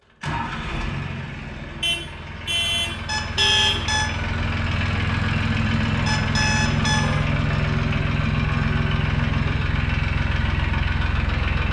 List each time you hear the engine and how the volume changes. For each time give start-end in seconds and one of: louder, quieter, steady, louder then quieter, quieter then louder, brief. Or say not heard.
0.2-11.6 louder.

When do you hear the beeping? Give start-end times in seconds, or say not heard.
3.0-4.1, 6.0-7.1.